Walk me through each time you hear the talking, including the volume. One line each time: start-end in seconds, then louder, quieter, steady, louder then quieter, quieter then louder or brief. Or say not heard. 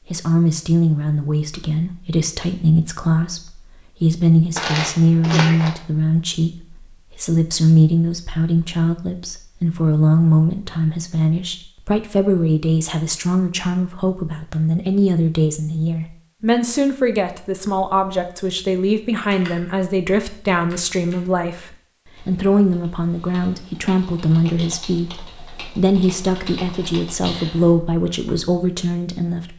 0.1-29.5 steady.